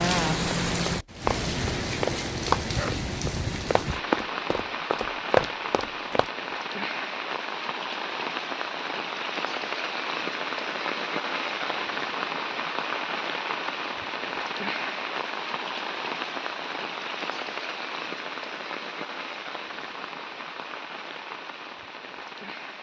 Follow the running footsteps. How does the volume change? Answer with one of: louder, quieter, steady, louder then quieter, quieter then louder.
quieter then louder.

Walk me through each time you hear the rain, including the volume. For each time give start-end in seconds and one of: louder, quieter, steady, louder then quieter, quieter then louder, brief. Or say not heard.
0.0-22.7 quieter.